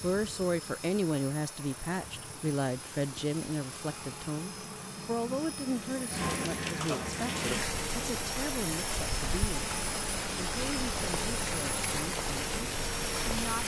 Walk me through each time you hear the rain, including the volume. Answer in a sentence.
You can hear the rain from 0.0 to 13.6 s, getting louder.